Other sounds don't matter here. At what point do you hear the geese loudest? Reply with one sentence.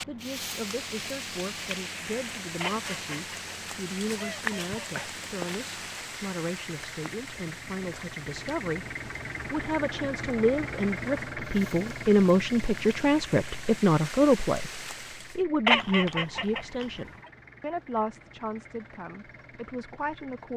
The loudest moment of the geese is at 16 seconds.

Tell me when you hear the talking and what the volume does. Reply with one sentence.
The talking can be heard from 0.0 to 20.5 s, getting louder then quieter.